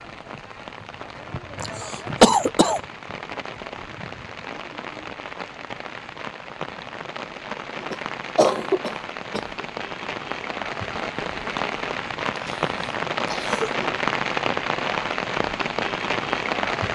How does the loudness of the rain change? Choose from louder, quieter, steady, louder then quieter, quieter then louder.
louder.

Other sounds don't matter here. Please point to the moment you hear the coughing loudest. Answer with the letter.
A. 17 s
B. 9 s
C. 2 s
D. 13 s
C.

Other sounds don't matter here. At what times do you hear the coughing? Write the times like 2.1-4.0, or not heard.
1.6-2.8, 7.9-9.4, 12.2-13.8.